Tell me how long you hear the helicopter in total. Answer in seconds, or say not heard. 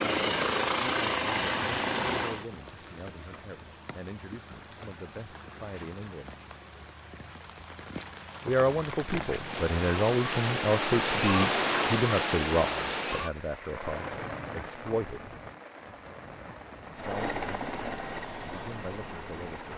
5 s.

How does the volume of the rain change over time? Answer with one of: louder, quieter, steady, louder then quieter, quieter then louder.
louder then quieter.